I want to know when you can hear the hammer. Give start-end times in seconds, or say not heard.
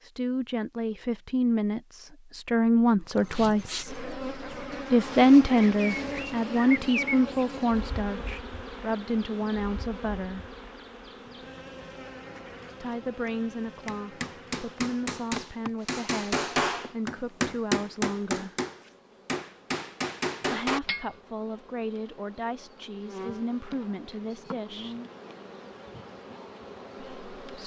13.8-21.1.